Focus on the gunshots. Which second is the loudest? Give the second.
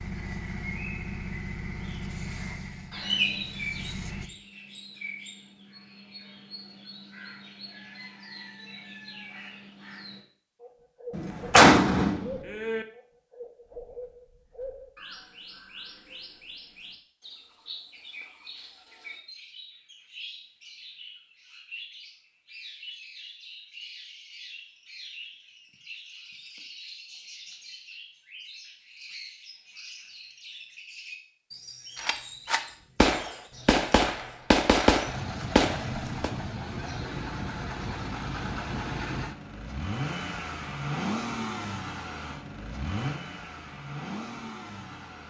12 s.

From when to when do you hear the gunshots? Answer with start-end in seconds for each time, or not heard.
11.1-12.8, 31.9-36.3.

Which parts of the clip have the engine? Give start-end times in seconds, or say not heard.
0.0-4.3, 35.0-45.2.